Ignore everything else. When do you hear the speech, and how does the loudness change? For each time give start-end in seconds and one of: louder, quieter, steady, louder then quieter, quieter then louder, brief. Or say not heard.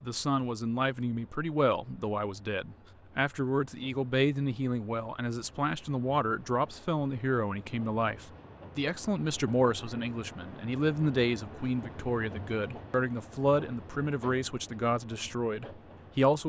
0.0-16.4 steady.